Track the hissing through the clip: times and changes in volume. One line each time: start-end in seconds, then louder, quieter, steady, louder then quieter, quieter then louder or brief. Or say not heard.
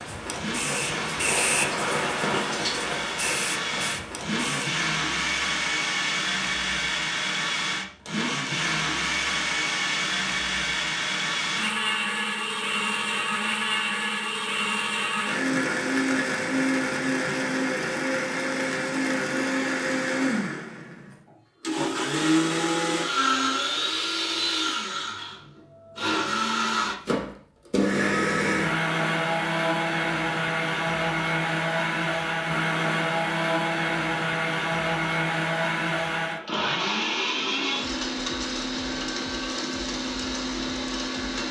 0.0-4.7 louder then quieter.